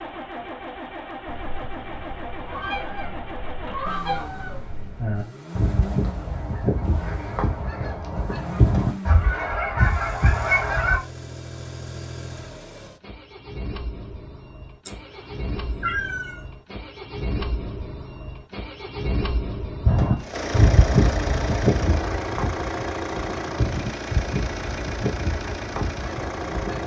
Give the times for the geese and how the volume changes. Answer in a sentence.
You can hear the geese from 1.2 to 11.0 s, getting louder; and from 19.9 to 26.8 s, getting quieter.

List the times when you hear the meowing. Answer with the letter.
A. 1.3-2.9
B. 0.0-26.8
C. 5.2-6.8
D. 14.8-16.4
D.